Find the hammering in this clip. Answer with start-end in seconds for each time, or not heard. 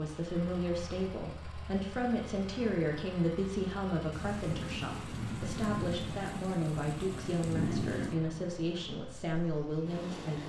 not heard.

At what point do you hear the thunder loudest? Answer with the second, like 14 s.
8 s.